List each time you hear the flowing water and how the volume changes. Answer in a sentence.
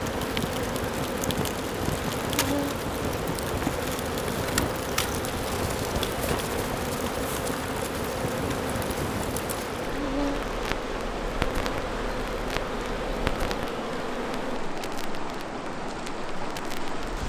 You can hear the flowing water from 0.0 to 17.2 s, at a steady volume.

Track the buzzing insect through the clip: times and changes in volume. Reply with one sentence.
You can hear the buzzing insect from 0.0 to 14.6 s, at a steady volume.